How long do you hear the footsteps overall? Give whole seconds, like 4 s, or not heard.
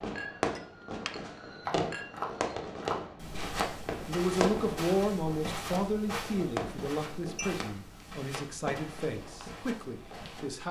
9 s.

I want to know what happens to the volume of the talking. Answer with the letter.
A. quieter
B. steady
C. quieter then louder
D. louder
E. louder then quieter
A.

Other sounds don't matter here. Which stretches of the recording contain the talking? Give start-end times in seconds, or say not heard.
4.0-10.6.